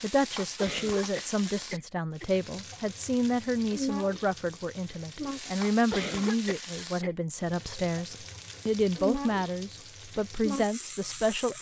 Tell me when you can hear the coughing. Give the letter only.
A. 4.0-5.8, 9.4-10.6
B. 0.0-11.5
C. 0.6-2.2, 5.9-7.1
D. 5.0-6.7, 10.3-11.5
C.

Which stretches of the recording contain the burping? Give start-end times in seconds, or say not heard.
not heard.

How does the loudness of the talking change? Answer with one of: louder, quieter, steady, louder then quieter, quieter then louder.
steady.